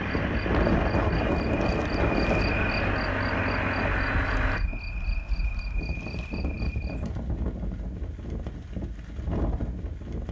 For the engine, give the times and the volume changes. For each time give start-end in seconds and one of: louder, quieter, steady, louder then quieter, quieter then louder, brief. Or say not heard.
0.0-4.6 louder.